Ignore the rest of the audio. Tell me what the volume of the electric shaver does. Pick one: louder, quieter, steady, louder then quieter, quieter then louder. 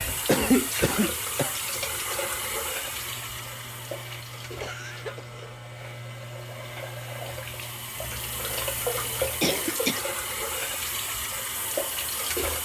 steady.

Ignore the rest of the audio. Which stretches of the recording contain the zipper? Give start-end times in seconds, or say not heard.
not heard.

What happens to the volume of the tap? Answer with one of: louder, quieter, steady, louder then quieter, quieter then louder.
quieter then louder.